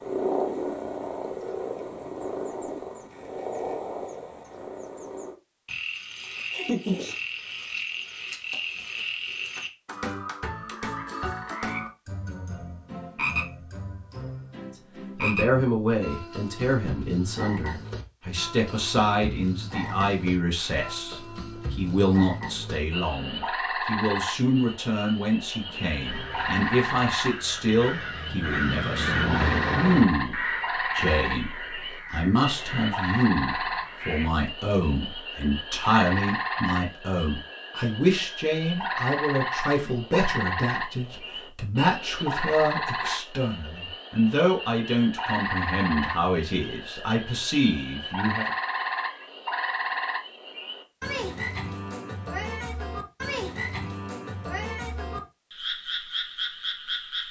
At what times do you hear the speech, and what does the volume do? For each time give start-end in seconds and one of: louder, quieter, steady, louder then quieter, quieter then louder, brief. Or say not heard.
15.2-48.5 steady.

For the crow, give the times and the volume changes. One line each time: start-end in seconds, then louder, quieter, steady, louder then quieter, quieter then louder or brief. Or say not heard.
25.6-34.3 louder then quieter.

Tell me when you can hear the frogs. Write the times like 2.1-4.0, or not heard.
0.0-57.2.